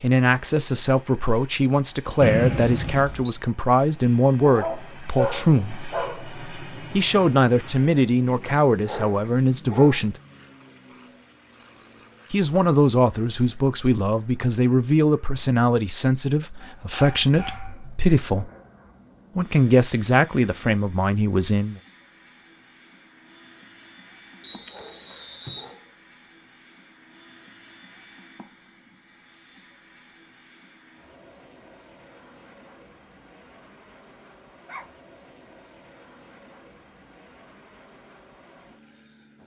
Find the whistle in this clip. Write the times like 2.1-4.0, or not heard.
2.2-3.3, 24.4-25.8.